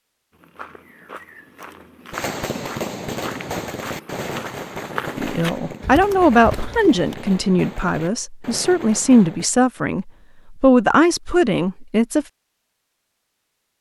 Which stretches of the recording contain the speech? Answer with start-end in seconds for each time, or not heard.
5.2-12.2.